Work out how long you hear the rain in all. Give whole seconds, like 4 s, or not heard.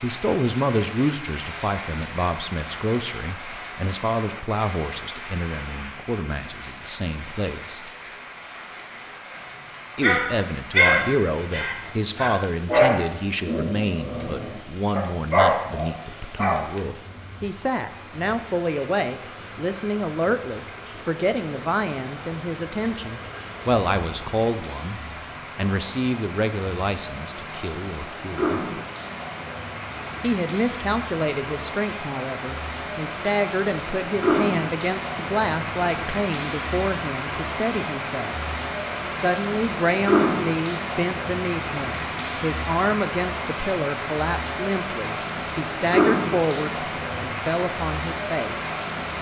49 s.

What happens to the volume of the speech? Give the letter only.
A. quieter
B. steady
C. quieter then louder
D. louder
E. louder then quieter
B.